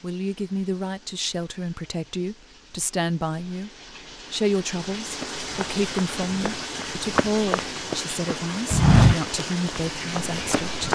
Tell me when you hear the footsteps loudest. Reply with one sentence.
The loudest moment of the footsteps is at 9 seconds.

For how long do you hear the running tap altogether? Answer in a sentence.
You can hear the running tap for 11 seconds altogether.